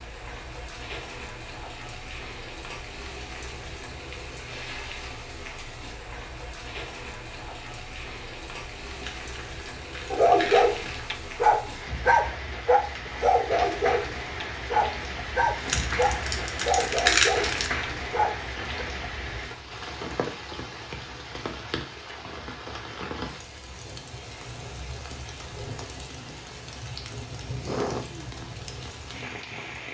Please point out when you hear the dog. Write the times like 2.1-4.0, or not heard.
10.1-18.9.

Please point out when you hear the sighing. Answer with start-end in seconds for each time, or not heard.
27.6-28.3.